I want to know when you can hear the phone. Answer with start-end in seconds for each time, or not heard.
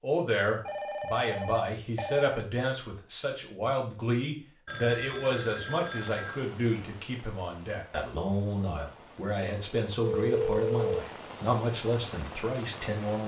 0.7-2.4, 4.7-6.5, 10.0-11.0.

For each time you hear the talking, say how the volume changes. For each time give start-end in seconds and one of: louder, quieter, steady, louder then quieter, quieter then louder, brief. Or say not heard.
0.0-13.2 steady.